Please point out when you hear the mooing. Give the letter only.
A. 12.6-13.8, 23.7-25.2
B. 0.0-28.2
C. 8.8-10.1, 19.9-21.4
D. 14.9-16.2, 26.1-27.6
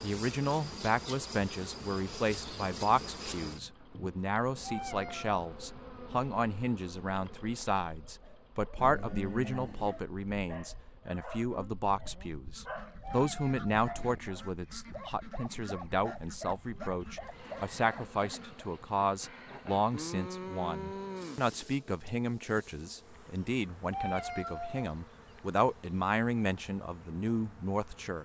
C.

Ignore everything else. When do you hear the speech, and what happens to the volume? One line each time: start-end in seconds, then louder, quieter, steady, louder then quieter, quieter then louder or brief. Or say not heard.
0.0-28.2 steady.